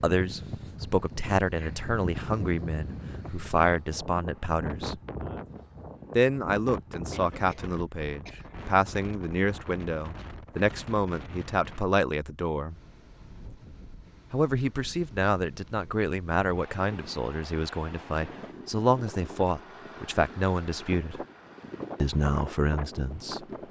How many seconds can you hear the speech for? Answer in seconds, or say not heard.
20 s.